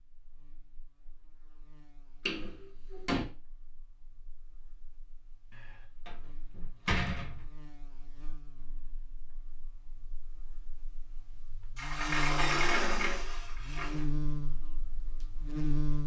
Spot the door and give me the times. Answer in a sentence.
The door can be heard from 2.2 to 3.2 s, from 5.5 to 7.5 s and from 11.8 to 14.1 s.